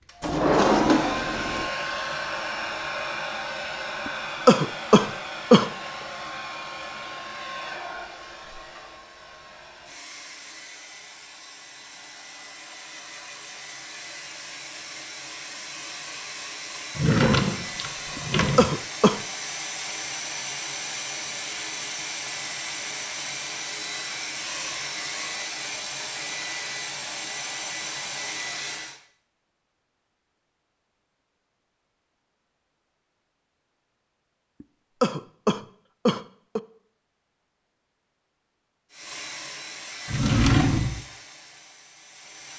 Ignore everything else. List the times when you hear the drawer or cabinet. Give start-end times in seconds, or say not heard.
0.2-1.7, 16.9-18.8, 40.0-41.0.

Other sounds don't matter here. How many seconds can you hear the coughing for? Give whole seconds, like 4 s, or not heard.
5 s.